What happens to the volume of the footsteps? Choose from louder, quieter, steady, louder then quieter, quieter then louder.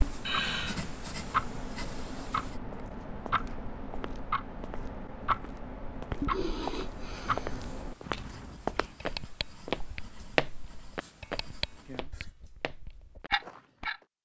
louder then quieter.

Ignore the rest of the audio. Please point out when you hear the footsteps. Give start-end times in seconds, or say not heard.
2.7-14.1.